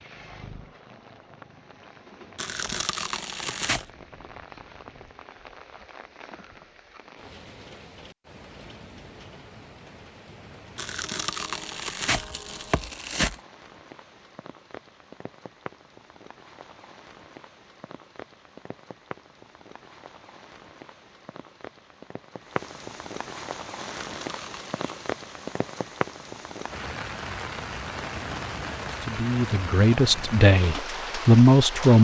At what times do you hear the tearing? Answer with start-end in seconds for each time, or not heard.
2.4-3.9, 10.8-13.4, 23.9-25.1.